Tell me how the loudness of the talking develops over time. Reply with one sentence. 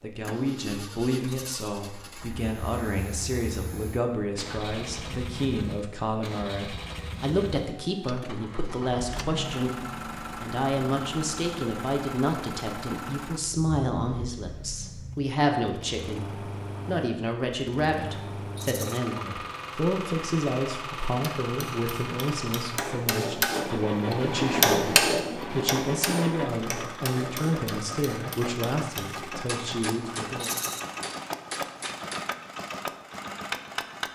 The volume of the talking stays about the same.